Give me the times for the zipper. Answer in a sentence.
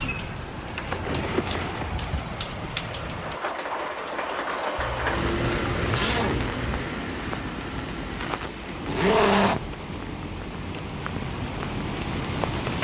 You can hear the zipper from 0.9 to 2.2 s, from 4.8 to 6.7 s and from 8.8 to 9.6 s.